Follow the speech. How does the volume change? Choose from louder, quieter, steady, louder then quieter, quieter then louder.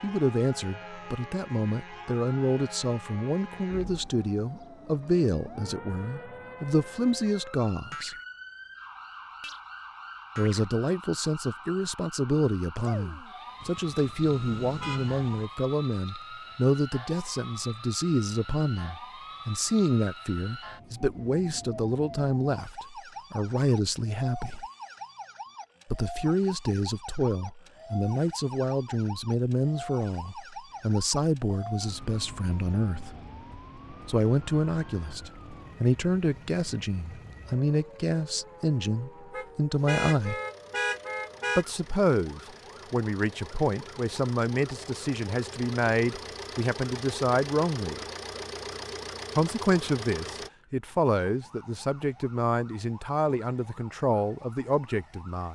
steady.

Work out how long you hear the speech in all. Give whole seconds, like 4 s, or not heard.
49 s.